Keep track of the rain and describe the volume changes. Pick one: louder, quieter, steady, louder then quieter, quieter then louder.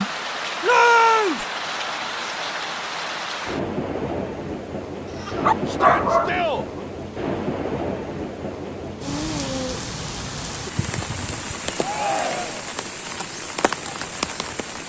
steady.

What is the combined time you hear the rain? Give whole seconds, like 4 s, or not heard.
15 s.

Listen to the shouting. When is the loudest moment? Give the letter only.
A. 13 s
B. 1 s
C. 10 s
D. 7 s
B.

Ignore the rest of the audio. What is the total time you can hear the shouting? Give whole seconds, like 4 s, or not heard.
3 s.